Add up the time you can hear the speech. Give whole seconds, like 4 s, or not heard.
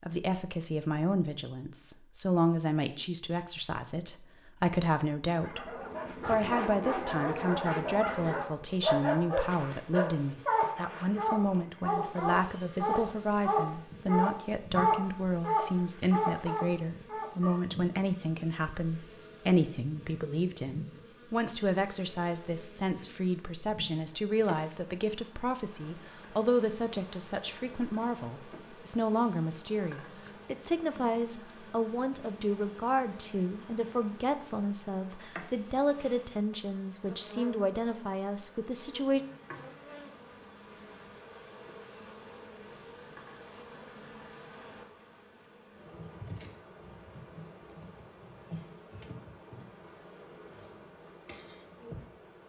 39 s.